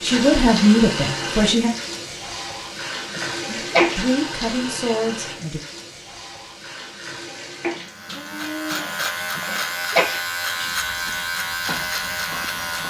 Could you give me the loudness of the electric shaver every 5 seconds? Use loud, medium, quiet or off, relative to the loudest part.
off, loud, loud.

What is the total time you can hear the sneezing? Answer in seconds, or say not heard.
2 s.